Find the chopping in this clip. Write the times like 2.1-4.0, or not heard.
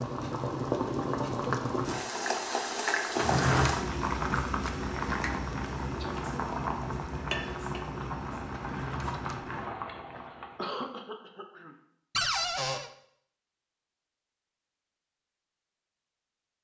not heard.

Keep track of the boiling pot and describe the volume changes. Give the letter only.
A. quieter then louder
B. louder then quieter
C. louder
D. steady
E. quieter
E.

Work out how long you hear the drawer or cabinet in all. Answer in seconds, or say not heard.
2 s.